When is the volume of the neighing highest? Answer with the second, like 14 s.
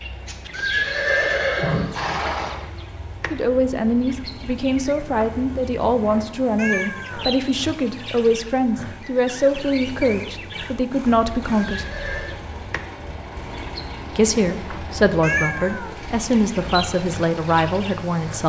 1 s.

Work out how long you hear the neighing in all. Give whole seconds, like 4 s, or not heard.
3 s.